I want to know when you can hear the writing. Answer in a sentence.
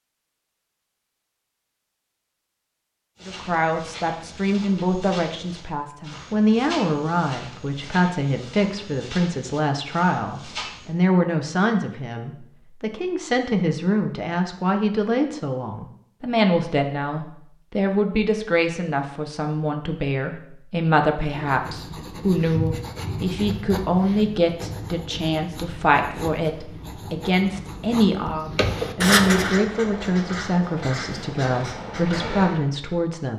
You can hear the writing from 21.2 to 32.7 s.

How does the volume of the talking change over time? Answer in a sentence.
The loudness of the talking stays about the same.